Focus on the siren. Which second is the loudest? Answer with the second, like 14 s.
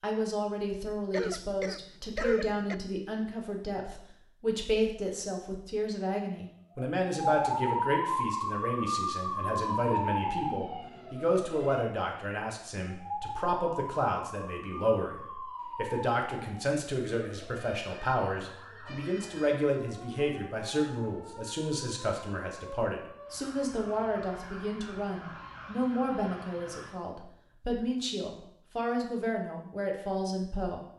8 s.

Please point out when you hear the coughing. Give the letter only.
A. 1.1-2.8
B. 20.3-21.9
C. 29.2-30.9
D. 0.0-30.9
A.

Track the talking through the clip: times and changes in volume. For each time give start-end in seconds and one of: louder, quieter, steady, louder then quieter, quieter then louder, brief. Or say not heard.
0.0-30.9 steady.